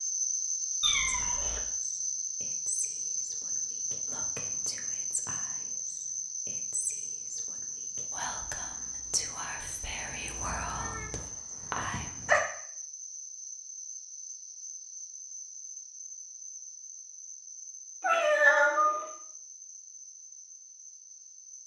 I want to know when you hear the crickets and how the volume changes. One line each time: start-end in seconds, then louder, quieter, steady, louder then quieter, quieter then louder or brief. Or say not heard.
0.0-21.6 quieter.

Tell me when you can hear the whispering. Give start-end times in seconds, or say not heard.
1.1-12.1.